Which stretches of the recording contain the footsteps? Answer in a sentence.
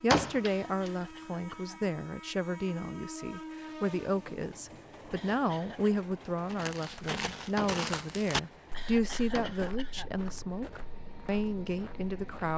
You can hear the footsteps from 6.5 to 12.5 s.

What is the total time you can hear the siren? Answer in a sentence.
You can't hear the siren here.